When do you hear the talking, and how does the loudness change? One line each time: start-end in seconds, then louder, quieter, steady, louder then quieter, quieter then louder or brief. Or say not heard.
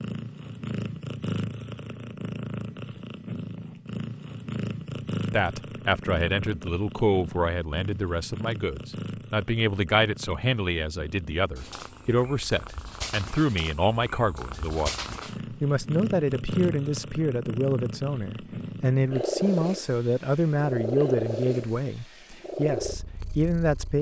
5.3-23.9 steady.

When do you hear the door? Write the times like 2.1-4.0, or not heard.
not heard.